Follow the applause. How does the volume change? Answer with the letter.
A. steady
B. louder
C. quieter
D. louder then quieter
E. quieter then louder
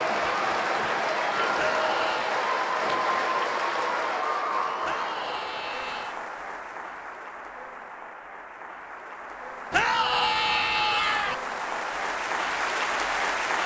E.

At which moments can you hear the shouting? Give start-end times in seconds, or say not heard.
1.6-2.4, 4.8-6.2, 9.7-11.3.